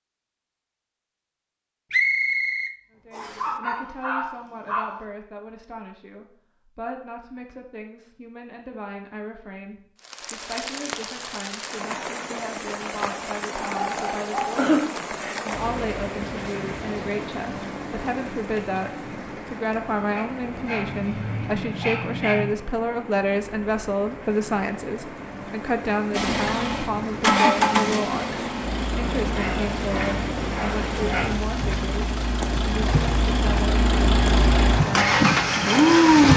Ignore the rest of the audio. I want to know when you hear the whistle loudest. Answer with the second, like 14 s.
2 s.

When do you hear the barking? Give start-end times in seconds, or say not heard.
3.4-5.0, 13.6-15.1, 20.1-22.5, 29.4-31.2.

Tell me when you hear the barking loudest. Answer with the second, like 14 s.
15 s.